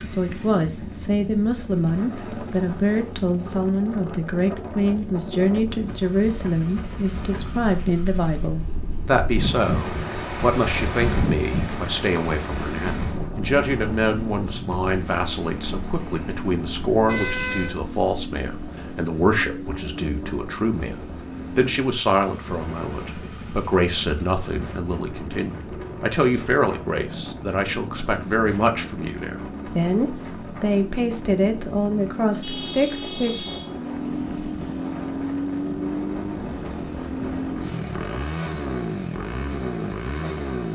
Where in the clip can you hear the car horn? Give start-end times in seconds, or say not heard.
16.5-17.8, 32.4-33.7.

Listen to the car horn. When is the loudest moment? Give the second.
17 s.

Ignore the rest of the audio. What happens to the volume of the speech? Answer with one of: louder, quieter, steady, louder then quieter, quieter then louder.
steady.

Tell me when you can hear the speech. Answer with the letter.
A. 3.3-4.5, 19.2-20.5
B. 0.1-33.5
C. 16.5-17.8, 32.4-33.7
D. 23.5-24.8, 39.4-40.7
B.